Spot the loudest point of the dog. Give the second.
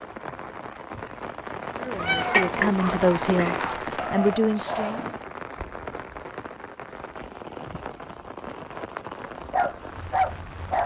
10 s.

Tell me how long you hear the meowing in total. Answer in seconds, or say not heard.
2 s.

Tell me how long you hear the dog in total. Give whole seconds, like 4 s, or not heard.
4 s.